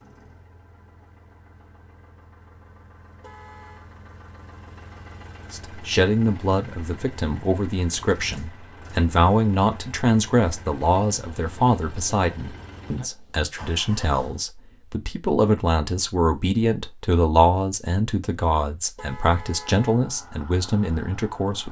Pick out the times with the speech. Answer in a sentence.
You can hear the speech from 5.5 to 21.6 s.